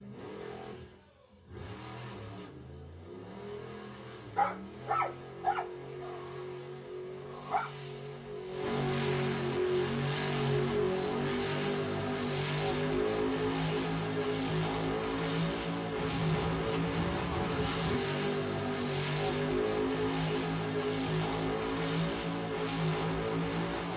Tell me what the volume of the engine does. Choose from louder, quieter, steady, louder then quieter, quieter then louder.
louder.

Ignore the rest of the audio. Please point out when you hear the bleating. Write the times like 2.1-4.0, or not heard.
15.9-17.9.